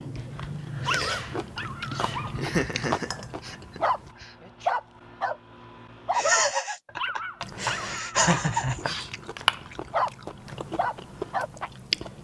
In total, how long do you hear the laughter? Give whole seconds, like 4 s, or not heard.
5 s.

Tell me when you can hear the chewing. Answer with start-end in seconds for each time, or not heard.
0.0-4.2, 7.4-12.1.